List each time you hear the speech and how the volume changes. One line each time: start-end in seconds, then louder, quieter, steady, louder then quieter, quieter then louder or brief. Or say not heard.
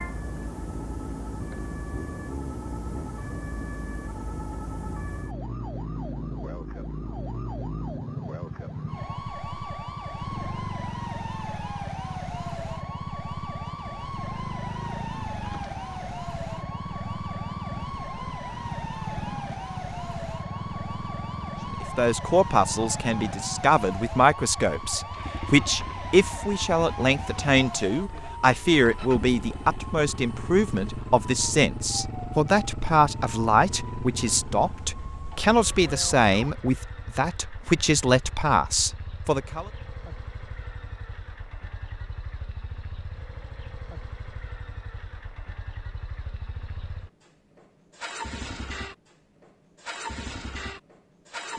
21.7-39.7 steady.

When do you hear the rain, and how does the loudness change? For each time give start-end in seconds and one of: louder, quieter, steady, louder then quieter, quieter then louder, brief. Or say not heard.
not heard.